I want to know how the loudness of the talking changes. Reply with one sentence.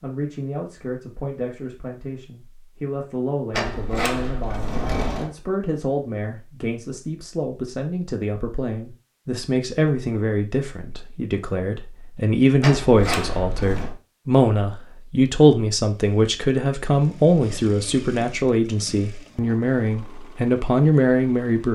The volume of the talking goes up.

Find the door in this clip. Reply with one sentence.
You can hear the door from 3.5 to 5.3 s and from 12.6 to 13.9 s.